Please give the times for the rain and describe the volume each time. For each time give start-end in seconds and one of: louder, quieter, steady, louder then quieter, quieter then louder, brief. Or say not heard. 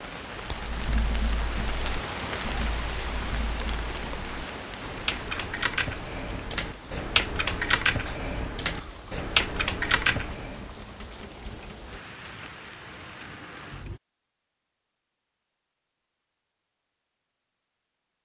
0.0-14.0 quieter.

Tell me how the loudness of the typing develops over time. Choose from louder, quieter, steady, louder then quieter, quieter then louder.
louder.